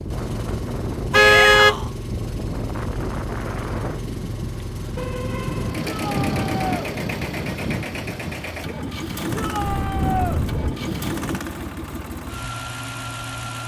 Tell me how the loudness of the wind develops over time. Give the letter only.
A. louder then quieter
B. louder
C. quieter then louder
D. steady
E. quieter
D.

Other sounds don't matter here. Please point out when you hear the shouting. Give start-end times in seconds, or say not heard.
1.1-1.9, 5.8-6.9, 9.3-10.4.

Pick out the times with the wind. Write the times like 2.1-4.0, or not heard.
0.0-11.4.